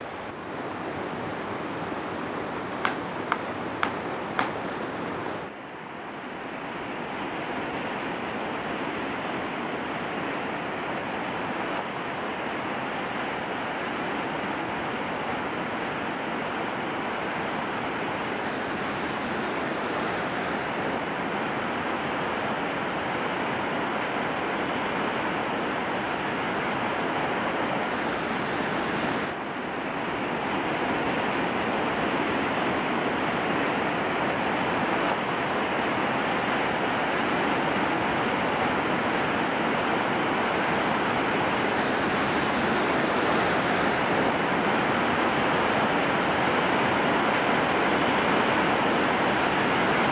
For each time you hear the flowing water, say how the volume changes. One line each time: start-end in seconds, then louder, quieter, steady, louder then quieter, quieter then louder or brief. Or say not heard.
0.0-50.0 louder.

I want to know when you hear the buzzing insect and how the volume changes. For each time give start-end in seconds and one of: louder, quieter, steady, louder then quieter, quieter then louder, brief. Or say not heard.
not heard.